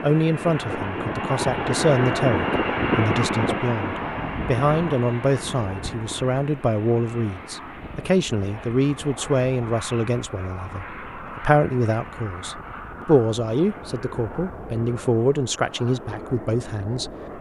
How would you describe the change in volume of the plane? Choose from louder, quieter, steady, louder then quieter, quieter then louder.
quieter.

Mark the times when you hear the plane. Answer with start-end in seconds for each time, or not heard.
0.0-17.3.